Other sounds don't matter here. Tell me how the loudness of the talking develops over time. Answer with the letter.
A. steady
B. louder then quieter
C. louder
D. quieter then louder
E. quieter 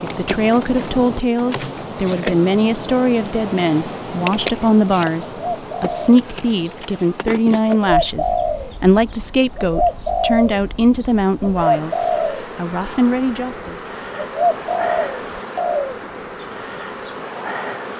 A.